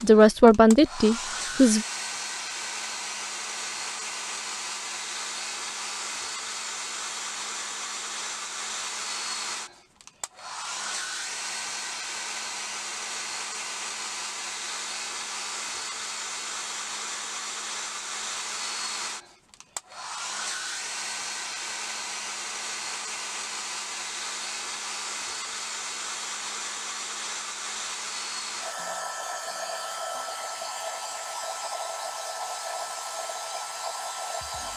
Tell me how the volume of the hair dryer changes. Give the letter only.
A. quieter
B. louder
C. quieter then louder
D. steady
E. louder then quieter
D.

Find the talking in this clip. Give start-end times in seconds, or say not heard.
0.0-1.9.